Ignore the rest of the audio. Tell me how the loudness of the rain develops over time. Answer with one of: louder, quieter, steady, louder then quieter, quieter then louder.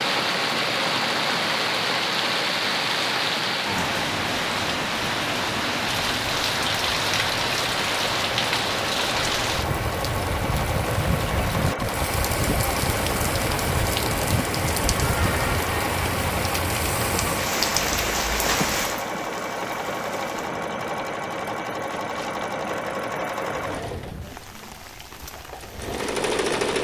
quieter.